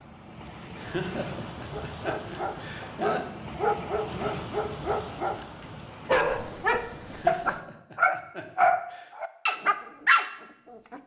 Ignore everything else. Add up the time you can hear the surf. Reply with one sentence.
You can hear the surf for 8 seconds altogether.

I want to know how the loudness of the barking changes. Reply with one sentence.
The volume of the barking goes up.